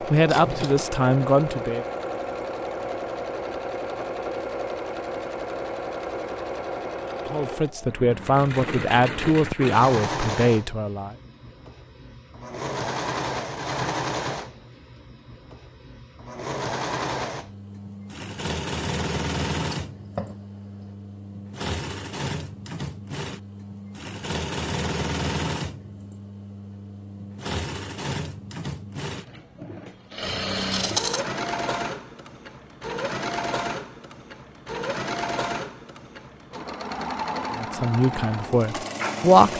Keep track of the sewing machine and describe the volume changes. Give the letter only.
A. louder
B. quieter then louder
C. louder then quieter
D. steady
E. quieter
D.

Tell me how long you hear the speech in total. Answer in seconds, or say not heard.
8 s.